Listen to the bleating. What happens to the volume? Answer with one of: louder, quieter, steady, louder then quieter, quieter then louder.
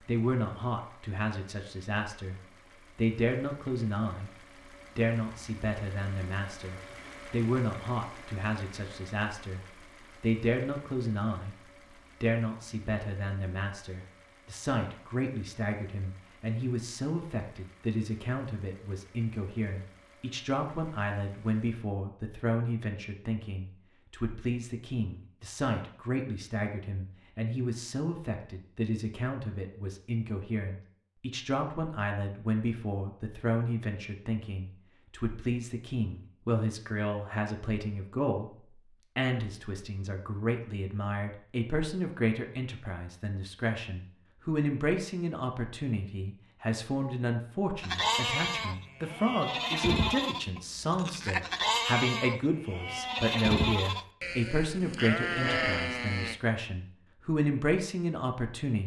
steady.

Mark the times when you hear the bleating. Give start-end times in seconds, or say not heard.
47.8-56.4.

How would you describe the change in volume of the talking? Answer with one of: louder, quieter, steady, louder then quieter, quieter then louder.
steady.